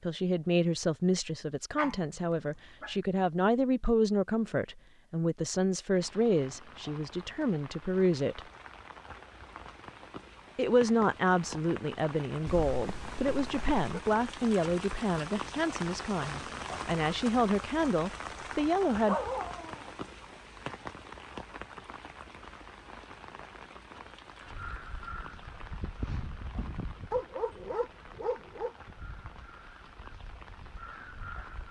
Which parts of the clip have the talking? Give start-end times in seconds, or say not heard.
0.0-8.4, 10.6-19.1.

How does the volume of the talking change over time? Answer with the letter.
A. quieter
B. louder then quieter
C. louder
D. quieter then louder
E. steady
E.